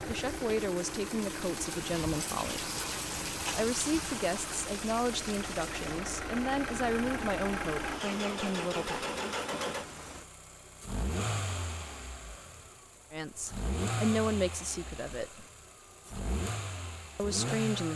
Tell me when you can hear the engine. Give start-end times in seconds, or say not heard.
0.0-17.9.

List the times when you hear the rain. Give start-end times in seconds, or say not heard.
0.0-10.3.